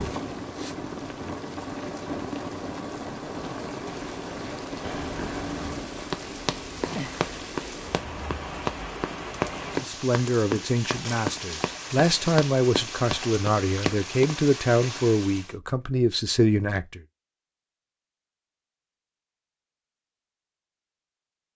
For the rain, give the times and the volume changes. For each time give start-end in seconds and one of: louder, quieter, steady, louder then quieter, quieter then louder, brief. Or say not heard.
0.0-15.6 steady.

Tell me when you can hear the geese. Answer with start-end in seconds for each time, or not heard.
not heard.